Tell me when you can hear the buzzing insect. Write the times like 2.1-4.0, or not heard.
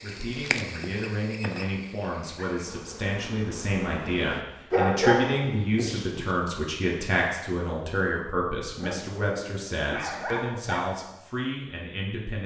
0.0-4.5.